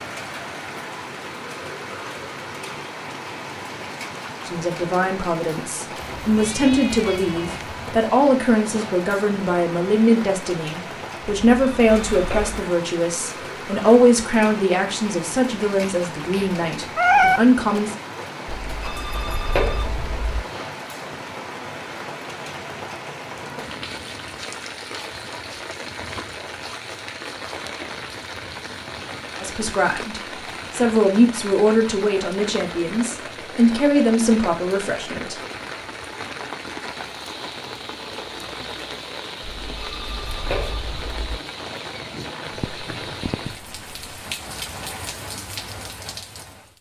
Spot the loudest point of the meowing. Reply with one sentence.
The volume of the meowing peaks at 17 seconds.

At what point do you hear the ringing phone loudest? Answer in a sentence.
The volume of the ringing phone peaks at 20 seconds.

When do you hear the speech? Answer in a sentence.
The speech can be heard from 4.5 to 17.9 s and from 29.4 to 35.4 s.